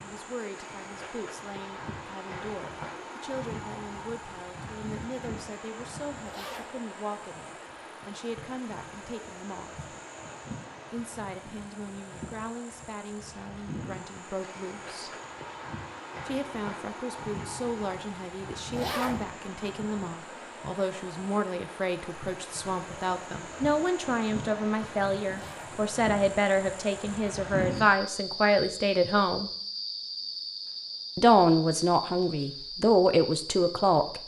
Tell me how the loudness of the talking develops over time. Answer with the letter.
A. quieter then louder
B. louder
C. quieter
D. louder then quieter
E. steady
B.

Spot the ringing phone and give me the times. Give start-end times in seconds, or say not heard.
not heard.